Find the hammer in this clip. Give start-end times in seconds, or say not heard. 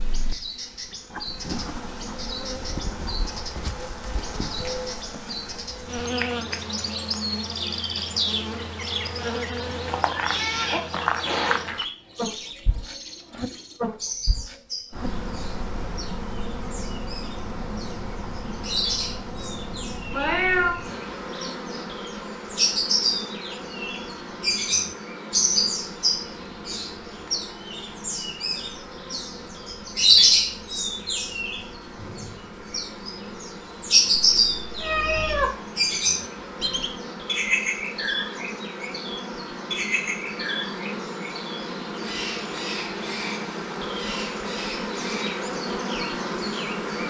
not heard.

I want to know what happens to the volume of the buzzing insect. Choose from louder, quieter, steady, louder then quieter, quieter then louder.
quieter then louder.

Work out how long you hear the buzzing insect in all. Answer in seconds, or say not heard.
47 s.